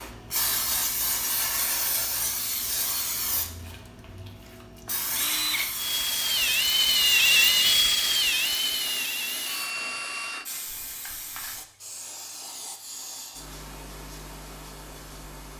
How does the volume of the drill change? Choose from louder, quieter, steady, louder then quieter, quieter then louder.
louder then quieter.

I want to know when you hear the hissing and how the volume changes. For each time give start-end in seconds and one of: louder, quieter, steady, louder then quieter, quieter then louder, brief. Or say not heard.
0.0-15.5 quieter.